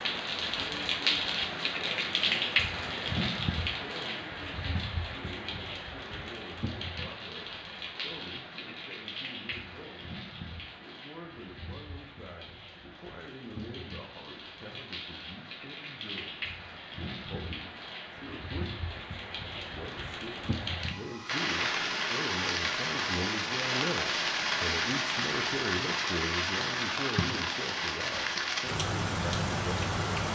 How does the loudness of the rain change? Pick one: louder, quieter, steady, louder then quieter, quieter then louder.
quieter then louder.